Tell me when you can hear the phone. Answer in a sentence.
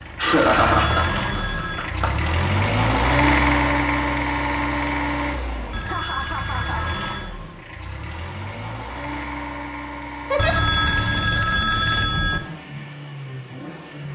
You can hear the phone from 0.6 to 1.9 s, from 5.7 to 7.3 s and from 10.3 to 12.4 s.